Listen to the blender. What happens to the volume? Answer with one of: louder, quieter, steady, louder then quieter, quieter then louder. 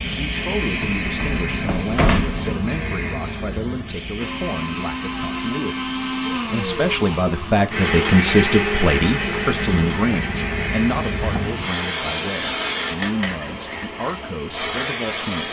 louder then quieter.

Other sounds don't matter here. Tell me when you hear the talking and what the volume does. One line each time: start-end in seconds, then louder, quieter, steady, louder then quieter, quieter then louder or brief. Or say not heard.
0.0-15.4 louder then quieter.